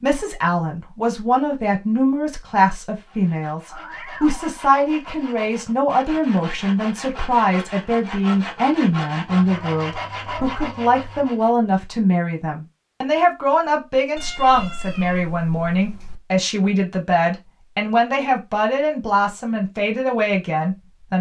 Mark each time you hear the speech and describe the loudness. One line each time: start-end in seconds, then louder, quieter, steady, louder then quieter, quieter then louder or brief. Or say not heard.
0.0-21.1 steady.